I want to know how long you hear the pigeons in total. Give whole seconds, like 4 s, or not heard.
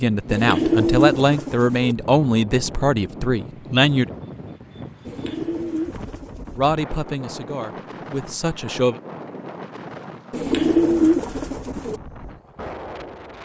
5 s.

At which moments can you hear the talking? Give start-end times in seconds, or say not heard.
0.0-4.1, 6.5-9.0.